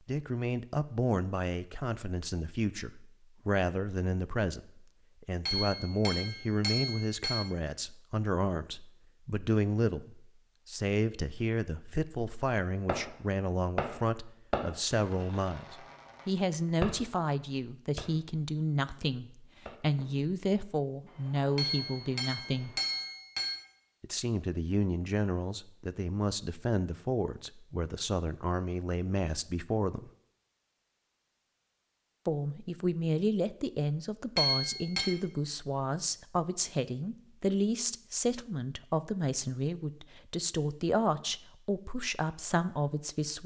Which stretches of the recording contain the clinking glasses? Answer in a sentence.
You can hear the clinking glasses from 5.5 to 7.5 s, from 21.6 to 23.6 s and from 34.4 to 35.1 s.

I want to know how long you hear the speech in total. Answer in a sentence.
The speech can be heard for 40 seconds in total.